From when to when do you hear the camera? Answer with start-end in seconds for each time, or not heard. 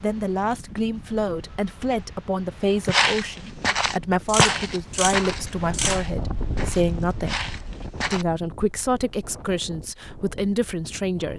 4.2-6.0.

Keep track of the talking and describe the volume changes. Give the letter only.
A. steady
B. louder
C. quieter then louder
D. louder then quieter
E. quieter
A.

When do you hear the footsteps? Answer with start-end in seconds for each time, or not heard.
2.8-8.2.